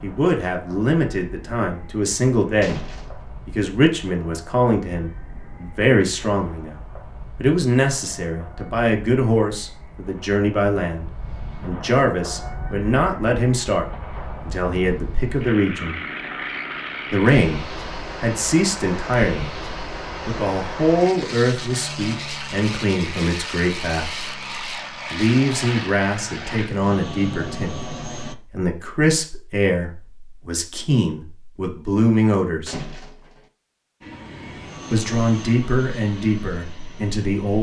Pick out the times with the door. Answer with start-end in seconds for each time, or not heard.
2.6-3.2, 32.6-33.5.